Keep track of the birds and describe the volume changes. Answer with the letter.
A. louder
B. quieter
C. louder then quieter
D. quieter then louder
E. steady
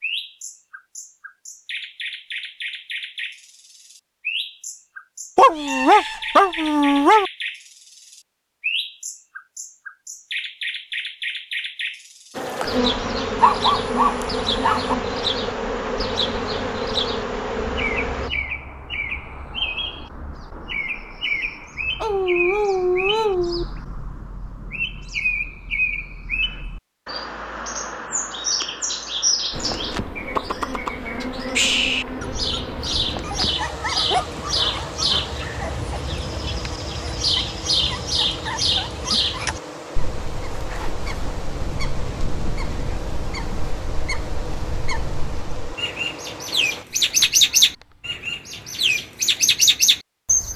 A.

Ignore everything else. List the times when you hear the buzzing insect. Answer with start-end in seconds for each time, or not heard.
12.3-18.3, 29.5-46.9.